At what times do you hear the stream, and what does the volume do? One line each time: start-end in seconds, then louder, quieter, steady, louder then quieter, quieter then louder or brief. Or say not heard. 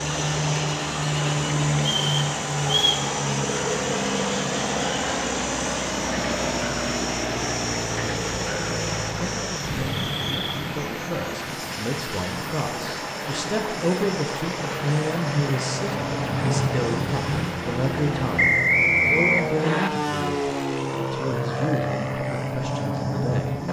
0.0-18.4 steady.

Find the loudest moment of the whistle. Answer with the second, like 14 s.
19 s.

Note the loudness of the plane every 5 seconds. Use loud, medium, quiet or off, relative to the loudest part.
loud, loud, medium, loud, loud.